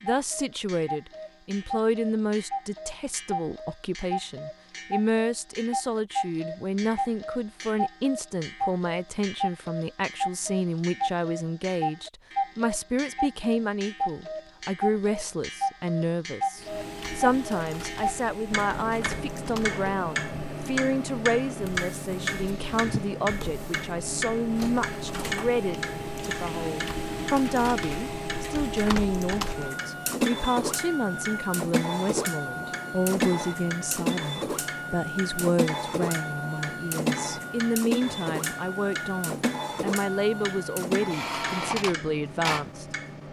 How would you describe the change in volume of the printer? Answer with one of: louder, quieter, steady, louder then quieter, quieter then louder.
louder.